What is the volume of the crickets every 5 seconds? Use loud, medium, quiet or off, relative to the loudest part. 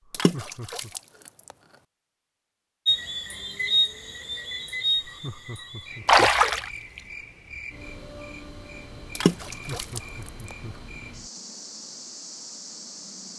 loud, quiet, quiet.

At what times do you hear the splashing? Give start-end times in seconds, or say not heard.
0.1-1.0, 6.0-7.0, 9.2-10.0.